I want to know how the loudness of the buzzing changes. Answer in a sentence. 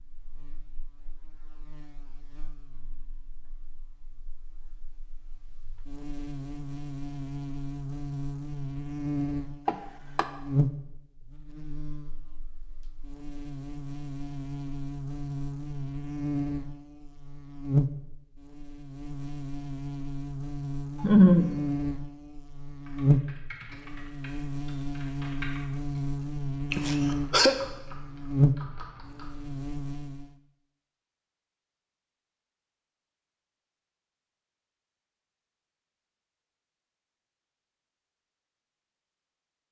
The loudness of the buzzing goes up.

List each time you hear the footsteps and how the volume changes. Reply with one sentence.
You can't hear the footsteps here.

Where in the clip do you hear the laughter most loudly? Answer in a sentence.
The volume of the laughter peaks at 21 seconds.